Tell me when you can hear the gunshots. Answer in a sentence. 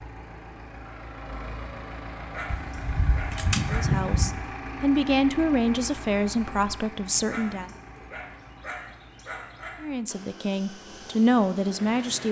You can hear the gunshots from 2.5 to 4.3 s.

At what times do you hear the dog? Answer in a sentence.
The dog can be heard from 2.3 to 4.0 s and from 7.2 to 9.8 s.